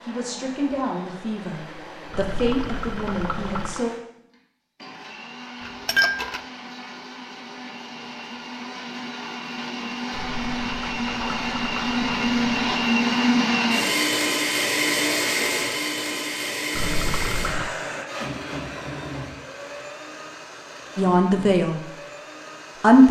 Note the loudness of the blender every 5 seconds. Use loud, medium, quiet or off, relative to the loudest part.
quiet, quiet, loud, medium, quiet.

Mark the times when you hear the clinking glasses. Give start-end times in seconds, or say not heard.
5.6-6.4.